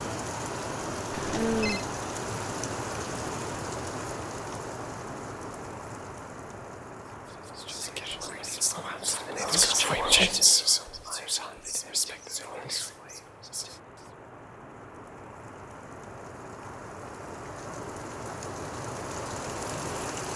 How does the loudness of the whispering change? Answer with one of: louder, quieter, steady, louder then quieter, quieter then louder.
louder then quieter.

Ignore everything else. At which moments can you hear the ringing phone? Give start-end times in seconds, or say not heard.
1.1-1.9.